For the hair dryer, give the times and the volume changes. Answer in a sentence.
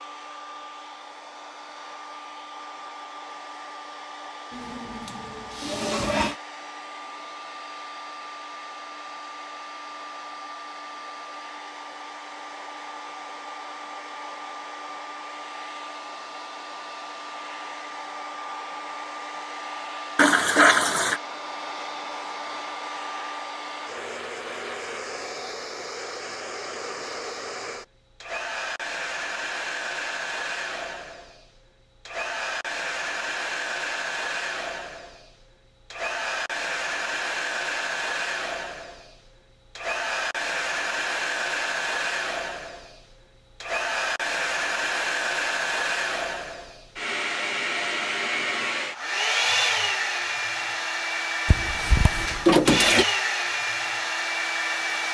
The hair dryer can be heard from 0.0 to 55.0 s, getting louder.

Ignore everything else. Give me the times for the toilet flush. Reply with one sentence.
The toilet flush can be heard from 4.5 to 6.3 s, from 20.1 to 21.2 s and from 51.5 to 53.0 s.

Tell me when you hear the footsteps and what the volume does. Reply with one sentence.
The footsteps can't be heard in this clip.